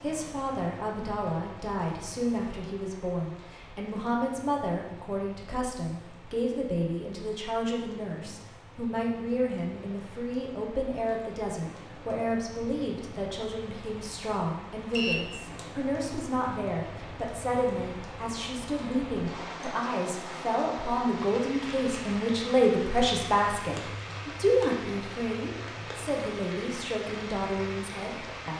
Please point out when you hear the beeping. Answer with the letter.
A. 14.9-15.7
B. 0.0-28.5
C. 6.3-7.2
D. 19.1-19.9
A.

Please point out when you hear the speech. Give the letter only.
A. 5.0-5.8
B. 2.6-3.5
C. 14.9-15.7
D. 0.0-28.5
D.